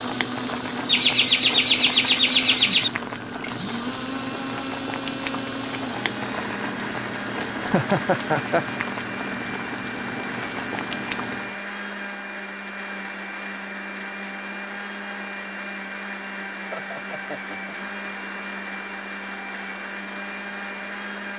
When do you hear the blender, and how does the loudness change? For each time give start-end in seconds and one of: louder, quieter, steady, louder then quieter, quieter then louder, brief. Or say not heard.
0.0-21.3 steady.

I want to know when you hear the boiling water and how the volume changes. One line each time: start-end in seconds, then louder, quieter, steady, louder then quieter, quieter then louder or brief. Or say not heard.
0.0-11.6 steady.